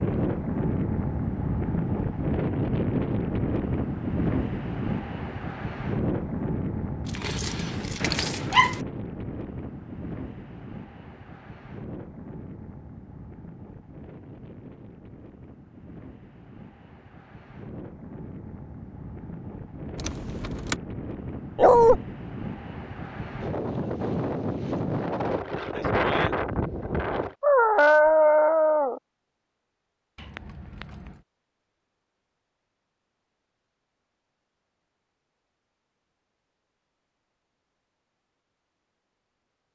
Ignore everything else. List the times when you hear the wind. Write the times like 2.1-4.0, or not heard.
0.0-27.4.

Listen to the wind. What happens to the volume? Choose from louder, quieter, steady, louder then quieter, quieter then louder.
quieter then louder.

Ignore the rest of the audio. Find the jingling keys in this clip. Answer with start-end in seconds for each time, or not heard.
7.0-8.8, 19.9-20.8, 30.1-31.2.